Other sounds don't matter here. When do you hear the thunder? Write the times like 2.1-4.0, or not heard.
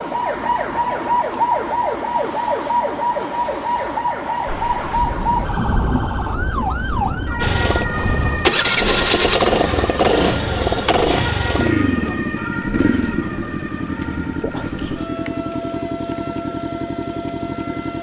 4.5-8.4.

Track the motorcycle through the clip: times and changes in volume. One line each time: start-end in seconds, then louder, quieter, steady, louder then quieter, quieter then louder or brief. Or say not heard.
7.4-17.9 quieter.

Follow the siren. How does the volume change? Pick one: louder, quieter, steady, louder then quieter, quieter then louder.
quieter.